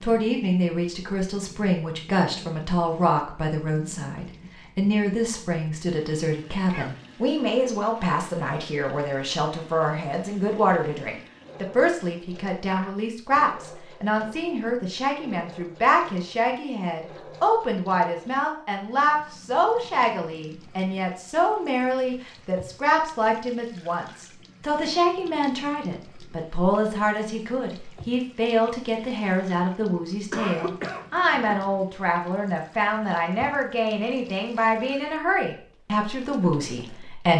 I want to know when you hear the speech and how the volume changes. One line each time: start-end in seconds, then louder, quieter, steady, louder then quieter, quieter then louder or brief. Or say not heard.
0.0-37.3 steady.